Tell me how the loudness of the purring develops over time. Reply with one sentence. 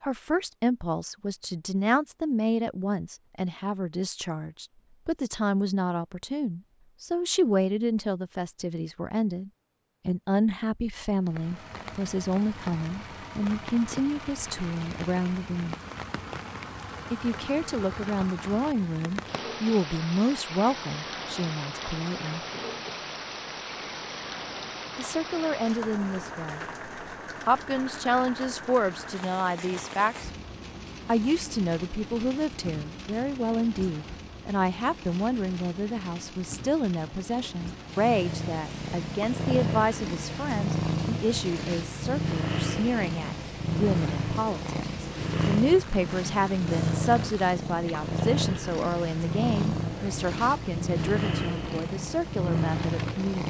The volume of the purring stays about the same.